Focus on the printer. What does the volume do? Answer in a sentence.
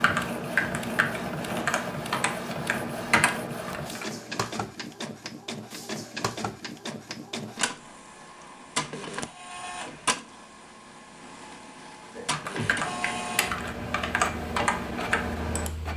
The loudness of the printer stays about the same.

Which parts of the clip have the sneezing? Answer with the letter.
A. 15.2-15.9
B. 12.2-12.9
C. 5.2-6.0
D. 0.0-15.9
B.